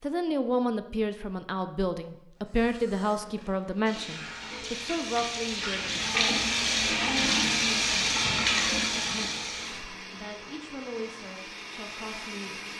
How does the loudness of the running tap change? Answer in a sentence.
The volume of the running tap goes up.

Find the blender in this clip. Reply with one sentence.
The blender can be heard from 9.5 to 12.7 s.